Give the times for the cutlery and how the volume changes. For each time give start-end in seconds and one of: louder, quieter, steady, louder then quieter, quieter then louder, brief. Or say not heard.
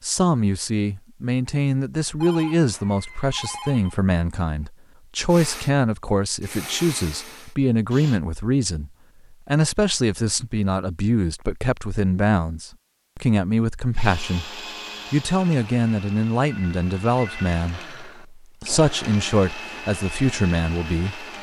not heard.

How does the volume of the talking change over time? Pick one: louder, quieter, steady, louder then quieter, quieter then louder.
steady.